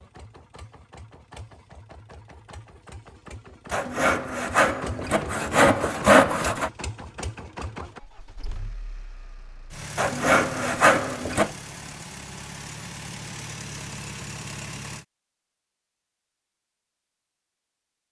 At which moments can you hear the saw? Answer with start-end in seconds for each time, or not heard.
3.7-6.7, 9.9-11.5.